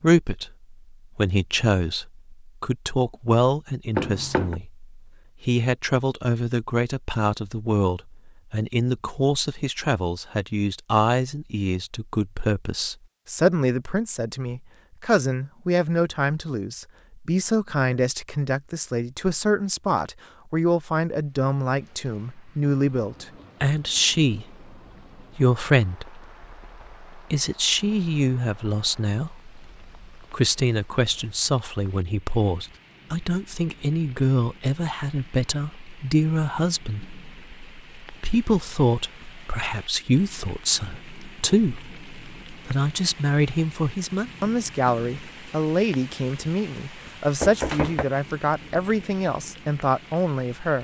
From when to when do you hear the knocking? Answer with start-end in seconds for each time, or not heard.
4.0-4.6, 47.4-48.0.